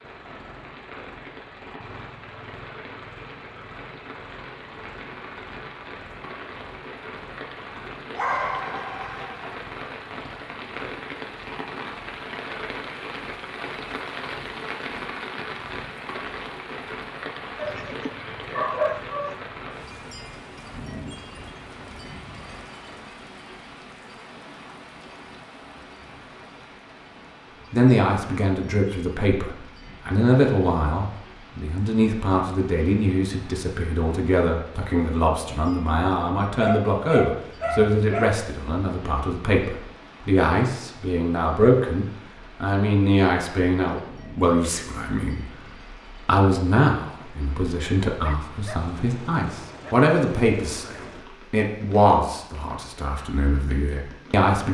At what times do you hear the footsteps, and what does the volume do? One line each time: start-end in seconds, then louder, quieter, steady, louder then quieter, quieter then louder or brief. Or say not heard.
not heard.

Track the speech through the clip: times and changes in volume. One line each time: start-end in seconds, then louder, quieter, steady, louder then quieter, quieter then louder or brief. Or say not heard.
27.7-54.6 steady.